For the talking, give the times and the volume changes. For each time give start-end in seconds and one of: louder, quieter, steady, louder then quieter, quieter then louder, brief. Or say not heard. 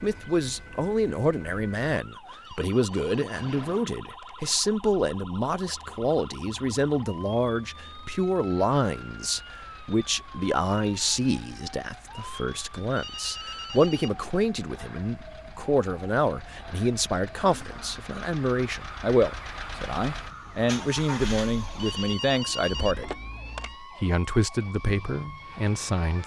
0.0-23.2 steady
23.8-26.2 brief.